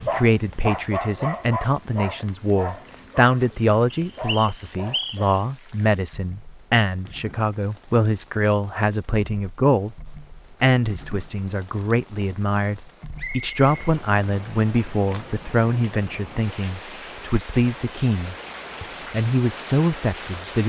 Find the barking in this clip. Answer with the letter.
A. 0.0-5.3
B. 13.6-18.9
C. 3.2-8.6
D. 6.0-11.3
A.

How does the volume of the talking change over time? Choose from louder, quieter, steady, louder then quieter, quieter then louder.
steady.